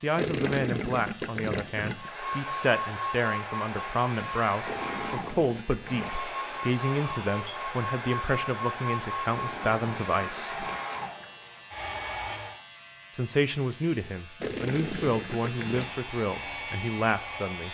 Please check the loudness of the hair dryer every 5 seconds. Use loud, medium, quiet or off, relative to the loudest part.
loud, loud, loud, medium.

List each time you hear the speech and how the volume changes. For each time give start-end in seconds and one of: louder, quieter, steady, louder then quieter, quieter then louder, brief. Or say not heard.
0.0-10.6 steady
13.1-17.6 steady.